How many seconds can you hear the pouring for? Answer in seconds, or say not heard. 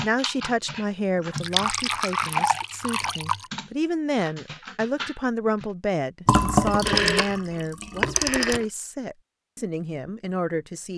4 s.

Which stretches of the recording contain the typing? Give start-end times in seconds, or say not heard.
0.0-5.7.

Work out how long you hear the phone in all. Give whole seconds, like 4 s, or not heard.
2 s.